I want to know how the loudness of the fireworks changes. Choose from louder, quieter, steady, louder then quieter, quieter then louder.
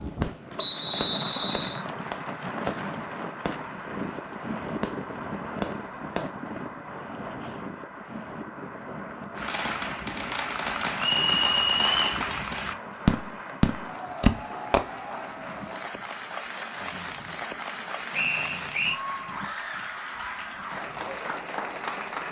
louder.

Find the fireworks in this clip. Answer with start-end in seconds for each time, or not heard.
0.0-6.3, 9.3-14.8.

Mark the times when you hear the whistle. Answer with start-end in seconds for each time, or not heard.
0.6-1.8, 10.9-12.2, 18.1-19.0.